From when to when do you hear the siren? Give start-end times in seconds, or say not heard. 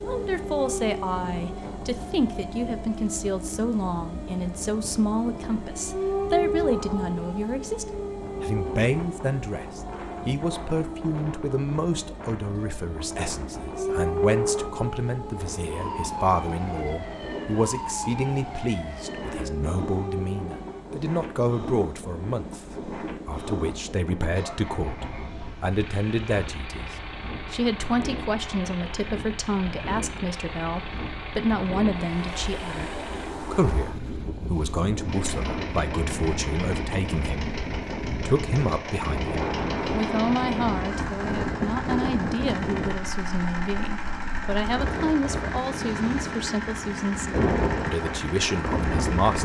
0.0-20.9.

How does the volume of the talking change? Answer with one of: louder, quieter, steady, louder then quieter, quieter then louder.
steady.